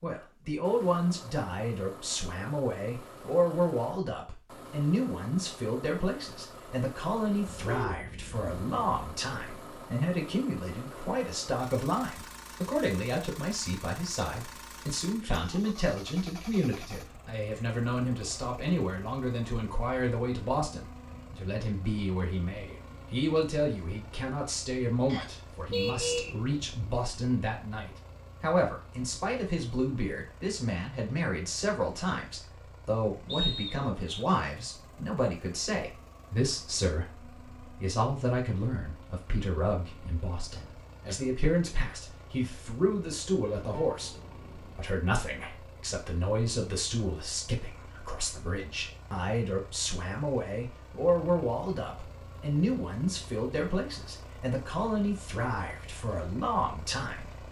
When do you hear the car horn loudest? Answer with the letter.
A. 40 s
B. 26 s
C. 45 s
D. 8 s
B.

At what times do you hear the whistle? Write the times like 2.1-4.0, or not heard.
25.1-26.4, 33.2-34.2.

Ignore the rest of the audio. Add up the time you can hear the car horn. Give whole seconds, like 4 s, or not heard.
4 s.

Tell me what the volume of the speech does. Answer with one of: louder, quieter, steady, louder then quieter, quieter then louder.
steady.